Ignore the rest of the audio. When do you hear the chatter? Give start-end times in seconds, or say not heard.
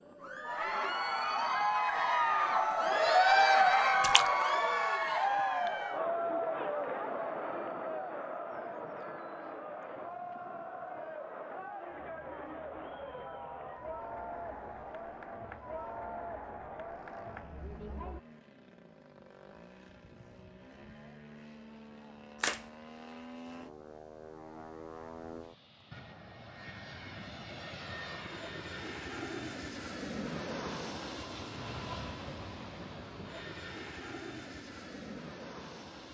0.1-18.2.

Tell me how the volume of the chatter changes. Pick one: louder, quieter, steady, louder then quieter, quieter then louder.
quieter.